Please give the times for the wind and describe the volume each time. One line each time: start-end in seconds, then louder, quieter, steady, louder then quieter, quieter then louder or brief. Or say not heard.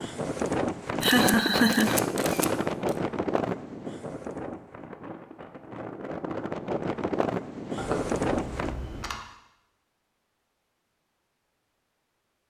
0.0-8.8 quieter then louder.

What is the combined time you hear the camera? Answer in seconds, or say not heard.
3 s.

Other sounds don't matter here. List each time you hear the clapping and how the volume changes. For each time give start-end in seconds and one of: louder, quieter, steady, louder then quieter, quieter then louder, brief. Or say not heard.
not heard.